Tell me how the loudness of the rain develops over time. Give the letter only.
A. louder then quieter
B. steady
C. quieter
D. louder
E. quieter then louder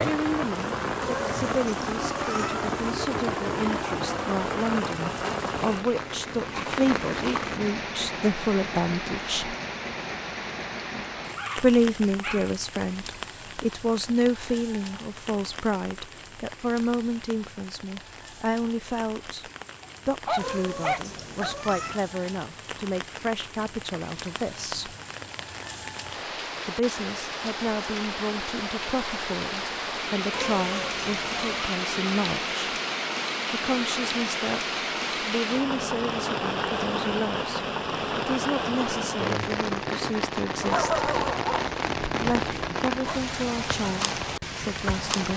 E.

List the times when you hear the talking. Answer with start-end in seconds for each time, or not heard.
0.0-9.6, 11.6-24.9, 26.6-32.5, 33.5-40.9, 42.1-45.3.